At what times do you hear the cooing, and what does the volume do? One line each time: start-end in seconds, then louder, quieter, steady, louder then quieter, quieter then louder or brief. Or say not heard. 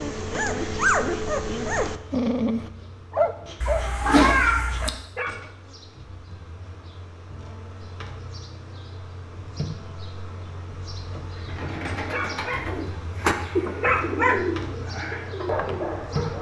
11.3-16.2 louder then quieter.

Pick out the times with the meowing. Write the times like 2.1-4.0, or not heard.
3.6-4.9.